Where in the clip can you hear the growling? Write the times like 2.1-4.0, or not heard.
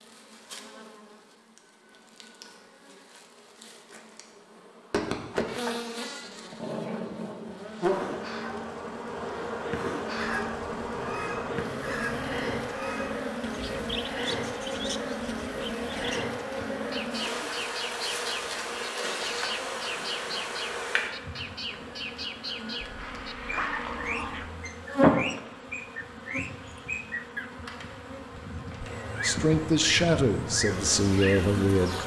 5.7-8.0, 10.9-12.6, 22.8-24.6.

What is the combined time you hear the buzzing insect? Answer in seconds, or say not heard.
32 s.